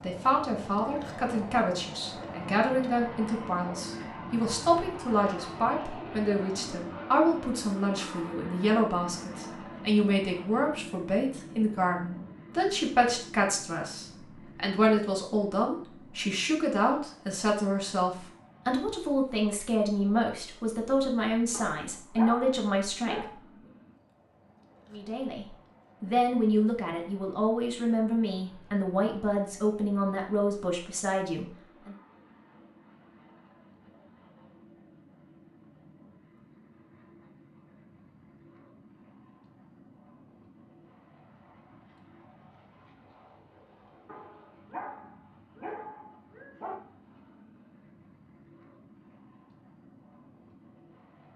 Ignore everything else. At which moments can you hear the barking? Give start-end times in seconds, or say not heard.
21.5-23.3, 44.0-46.8.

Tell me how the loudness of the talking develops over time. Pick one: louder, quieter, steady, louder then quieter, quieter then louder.
steady.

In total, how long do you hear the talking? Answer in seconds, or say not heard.
30 s.